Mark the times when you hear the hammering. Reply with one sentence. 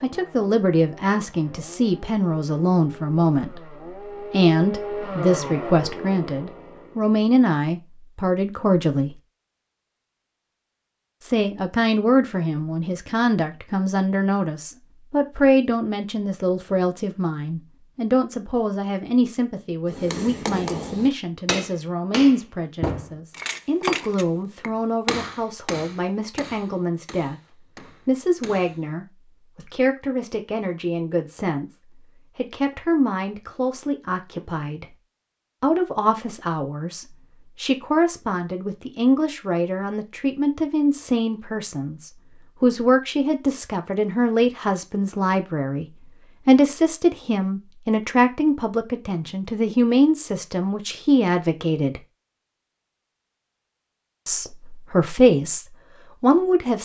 You can hear the hammering from 19.9 to 28.8 s.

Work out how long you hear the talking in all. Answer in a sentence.
The talking can be heard for 51 seconds in total.